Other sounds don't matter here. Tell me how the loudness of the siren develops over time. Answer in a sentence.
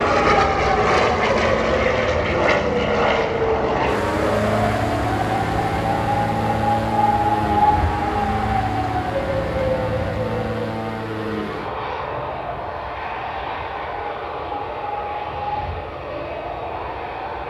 The volume of the siren goes down.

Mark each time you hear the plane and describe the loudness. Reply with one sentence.
The plane can be heard from 0.0 to 17.4 s, getting quieter.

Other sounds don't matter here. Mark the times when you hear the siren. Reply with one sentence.
The siren can be heard from 0.0 to 17.4 s.